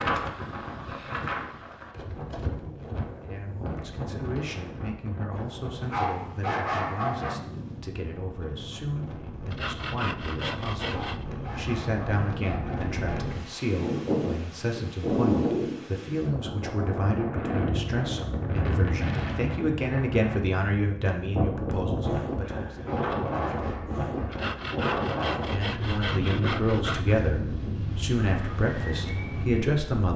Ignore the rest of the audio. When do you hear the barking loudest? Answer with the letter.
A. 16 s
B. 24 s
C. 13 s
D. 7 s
D.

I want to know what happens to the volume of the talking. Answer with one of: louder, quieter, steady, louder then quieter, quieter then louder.
louder.